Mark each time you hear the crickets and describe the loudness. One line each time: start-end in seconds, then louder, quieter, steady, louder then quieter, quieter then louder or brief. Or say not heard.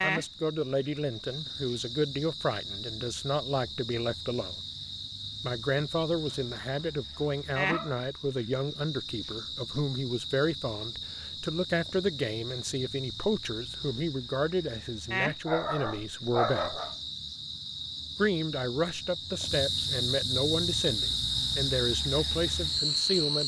0.0-23.4 louder.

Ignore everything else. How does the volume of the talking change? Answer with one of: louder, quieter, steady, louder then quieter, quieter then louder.
steady.